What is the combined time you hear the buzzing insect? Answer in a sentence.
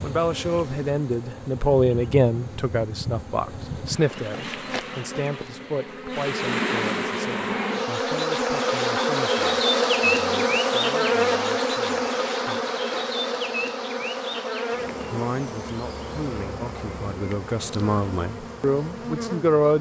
The buzzing insect can be heard for 20 seconds in total.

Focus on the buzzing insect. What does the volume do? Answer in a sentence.
The loudness of the buzzing insect goes up, then down.